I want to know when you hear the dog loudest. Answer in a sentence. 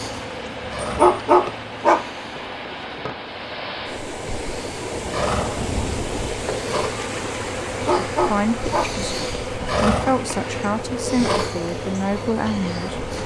The loudest moment of the dog is at 1 second.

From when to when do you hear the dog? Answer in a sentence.
You can hear the dog from 0.8 to 2.0 s and from 7.7 to 8.9 s.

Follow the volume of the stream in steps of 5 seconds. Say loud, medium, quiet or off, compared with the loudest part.
loud, loud, medium.